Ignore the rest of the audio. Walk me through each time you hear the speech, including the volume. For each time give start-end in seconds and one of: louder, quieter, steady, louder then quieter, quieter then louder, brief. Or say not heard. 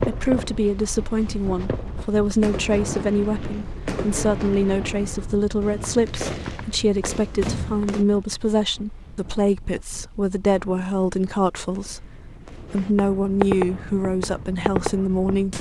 0.0-15.5 steady.